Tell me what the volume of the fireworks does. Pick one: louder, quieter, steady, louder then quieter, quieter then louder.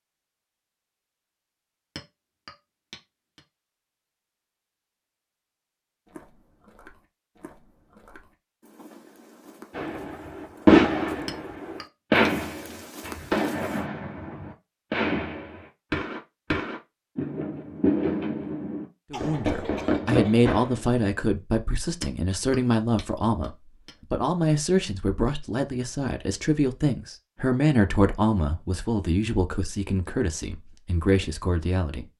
quieter.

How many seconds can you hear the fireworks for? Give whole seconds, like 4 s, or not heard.
11 s.